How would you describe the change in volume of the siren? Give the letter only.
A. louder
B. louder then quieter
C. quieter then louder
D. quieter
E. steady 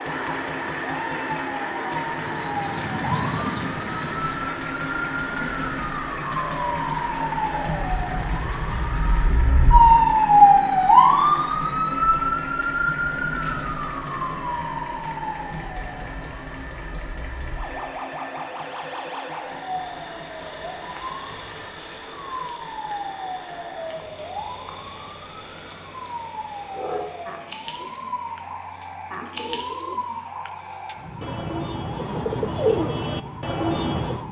B.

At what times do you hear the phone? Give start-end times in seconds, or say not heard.
not heard.